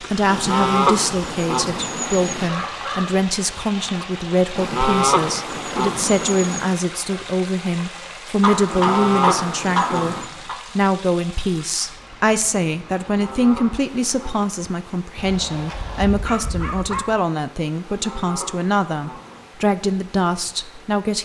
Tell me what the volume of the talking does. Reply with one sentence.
The volume of the talking stays about the same.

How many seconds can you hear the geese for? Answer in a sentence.
The geese can be heard for 9 seconds in total.